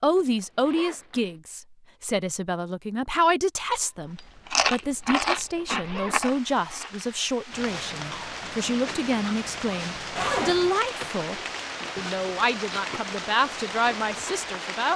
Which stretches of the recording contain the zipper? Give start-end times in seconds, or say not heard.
0.0-1.4, 5.2-6.5, 10.2-10.8.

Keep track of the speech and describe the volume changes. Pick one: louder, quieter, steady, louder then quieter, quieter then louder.
steady.